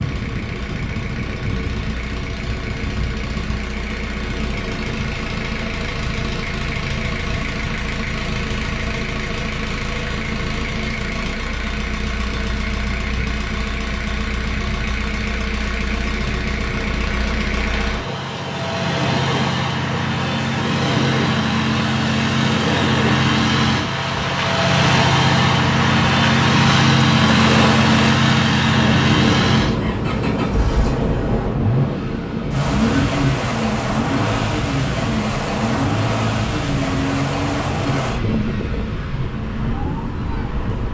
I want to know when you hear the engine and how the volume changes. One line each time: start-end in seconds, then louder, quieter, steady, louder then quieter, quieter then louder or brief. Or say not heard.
0.0-40.8 louder then quieter.